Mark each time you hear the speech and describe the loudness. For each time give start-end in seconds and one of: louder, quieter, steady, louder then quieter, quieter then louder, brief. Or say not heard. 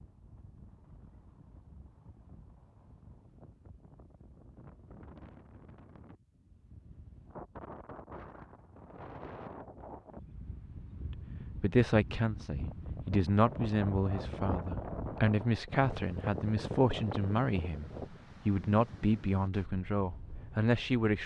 11.6-21.2 steady.